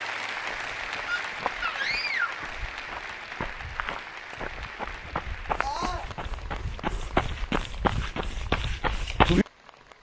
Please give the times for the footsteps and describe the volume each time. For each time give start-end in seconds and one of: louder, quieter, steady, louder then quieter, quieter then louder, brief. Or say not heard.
0.3-9.4 louder.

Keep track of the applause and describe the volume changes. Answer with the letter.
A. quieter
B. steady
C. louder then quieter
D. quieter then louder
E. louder
A.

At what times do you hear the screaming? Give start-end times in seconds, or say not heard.
1.1-2.5, 5.5-6.1.